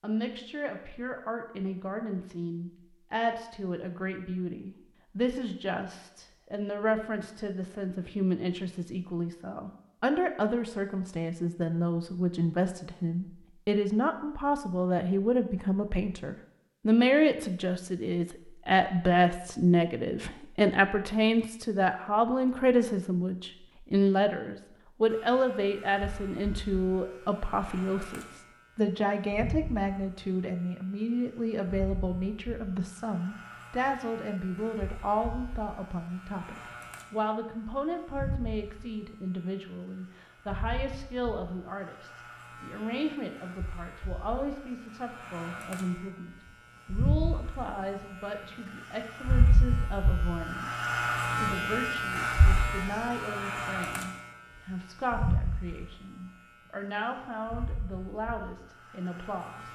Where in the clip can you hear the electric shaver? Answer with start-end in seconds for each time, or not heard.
25.1-30.2, 31.6-39.2, 40.5-48.0, 49.2-56.2, 57.5-59.7.